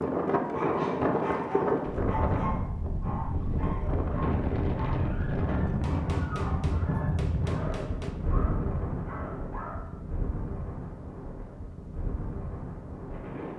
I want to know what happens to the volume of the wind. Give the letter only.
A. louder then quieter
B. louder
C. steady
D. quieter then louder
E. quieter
E.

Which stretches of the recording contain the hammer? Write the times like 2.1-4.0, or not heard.
5.8-8.2.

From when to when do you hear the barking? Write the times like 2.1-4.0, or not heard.
0.5-9.9.